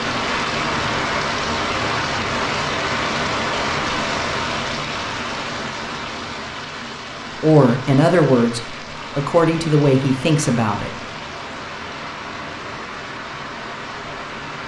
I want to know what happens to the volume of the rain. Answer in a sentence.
The loudness of the rain goes down.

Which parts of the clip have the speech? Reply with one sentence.
You can hear the speech from 7.4 to 10.9 s.